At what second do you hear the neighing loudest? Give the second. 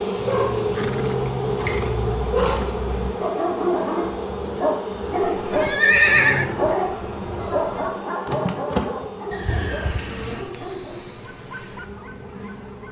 6 s.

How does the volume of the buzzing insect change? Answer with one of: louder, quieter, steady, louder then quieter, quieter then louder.
quieter.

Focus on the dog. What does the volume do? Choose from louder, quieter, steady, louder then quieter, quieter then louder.
quieter.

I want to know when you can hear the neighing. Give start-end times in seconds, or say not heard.
0.7-2.8, 5.2-6.5, 9.3-10.4.